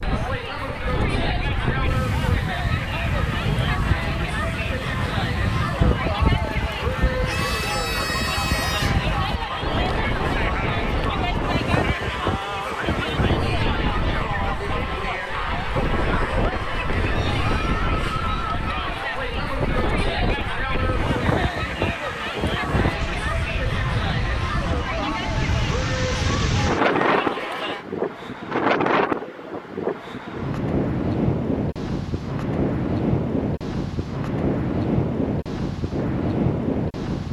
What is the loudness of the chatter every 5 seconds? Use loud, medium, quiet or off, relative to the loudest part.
loud, loud, loud, loud, loud, loud, off, off.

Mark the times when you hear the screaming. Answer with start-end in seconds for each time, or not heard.
7.2-9.1.